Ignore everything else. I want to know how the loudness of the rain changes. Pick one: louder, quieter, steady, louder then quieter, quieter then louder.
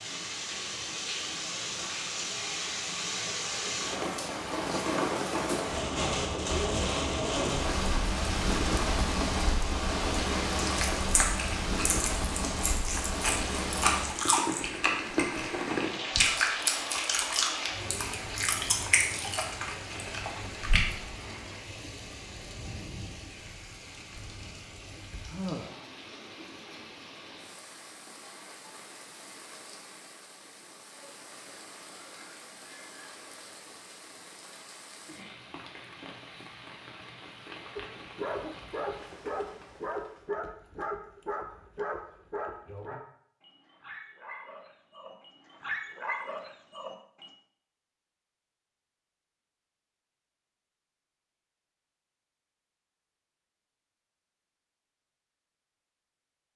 quieter.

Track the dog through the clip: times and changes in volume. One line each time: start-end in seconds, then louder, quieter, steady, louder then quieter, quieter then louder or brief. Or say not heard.
37.8-47.3 quieter then louder.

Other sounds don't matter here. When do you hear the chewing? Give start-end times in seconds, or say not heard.
10.7-21.1.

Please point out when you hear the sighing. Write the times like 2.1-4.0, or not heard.
25.2-25.9.